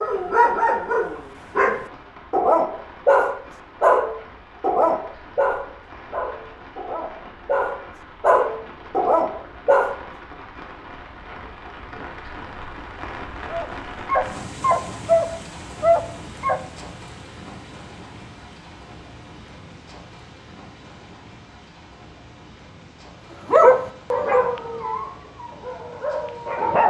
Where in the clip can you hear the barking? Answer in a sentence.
The barking can be heard from 0.0 to 10.0 s, from 13.5 to 16.6 s and from 23.5 to 26.8 s.